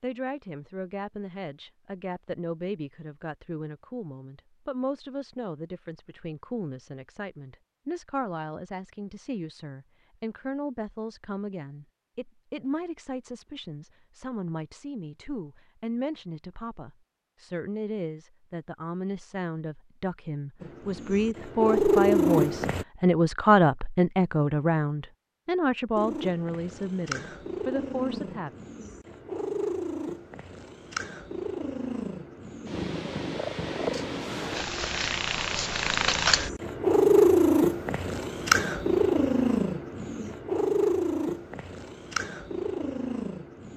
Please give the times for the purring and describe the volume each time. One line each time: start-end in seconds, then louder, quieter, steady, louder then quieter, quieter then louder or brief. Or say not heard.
20.6-22.9 brief
25.9-43.7 louder then quieter.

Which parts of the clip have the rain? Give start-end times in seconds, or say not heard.
not heard.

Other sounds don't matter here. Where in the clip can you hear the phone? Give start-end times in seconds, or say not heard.
not heard.